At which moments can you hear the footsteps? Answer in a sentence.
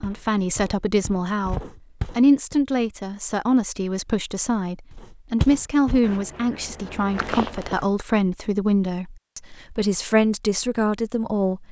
The footsteps can be heard from 0.0 to 2.5 s and from 5.0 to 7.8 s.